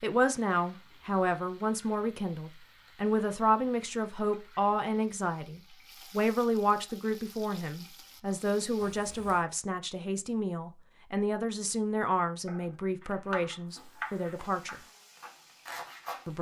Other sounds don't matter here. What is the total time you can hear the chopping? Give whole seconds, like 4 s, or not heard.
4 s.